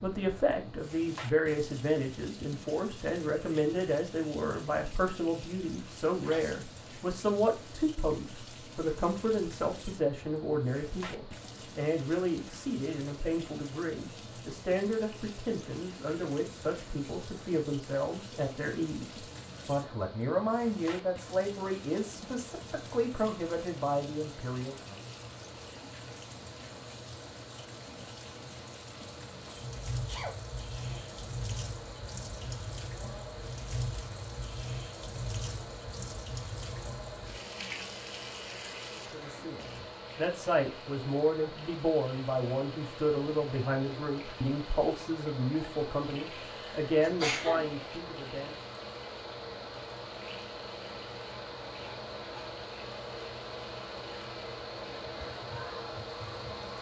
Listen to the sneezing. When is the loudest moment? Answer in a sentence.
The loudest moment of the sneezing is at 47 seconds.